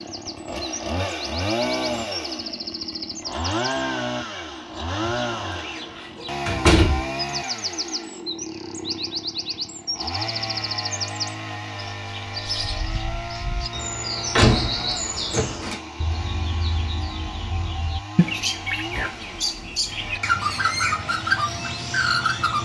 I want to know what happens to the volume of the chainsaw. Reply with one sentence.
The volume of the chainsaw goes down.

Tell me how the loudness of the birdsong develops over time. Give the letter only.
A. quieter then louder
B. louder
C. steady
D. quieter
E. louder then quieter
B.